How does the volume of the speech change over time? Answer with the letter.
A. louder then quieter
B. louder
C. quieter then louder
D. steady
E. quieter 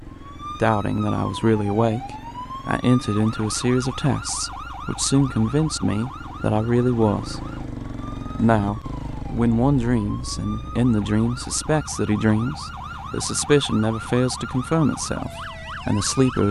D.